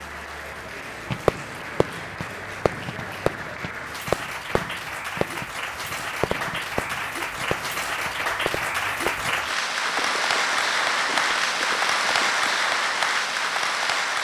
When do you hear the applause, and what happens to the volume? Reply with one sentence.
The applause can be heard from 0.0 to 14.1 s, getting louder.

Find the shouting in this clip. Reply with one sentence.
You can't hear the shouting here.